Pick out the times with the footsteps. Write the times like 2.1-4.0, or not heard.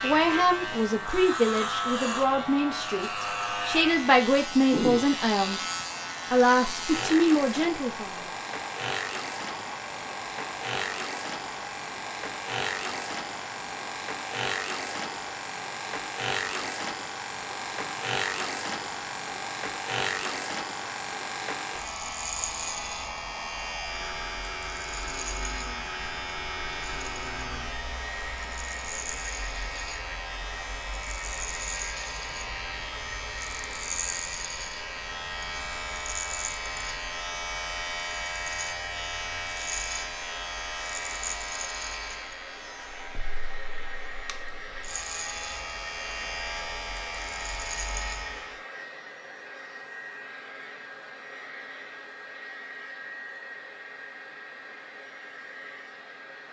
not heard.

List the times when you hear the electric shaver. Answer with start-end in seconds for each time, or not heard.
0.0-48.6.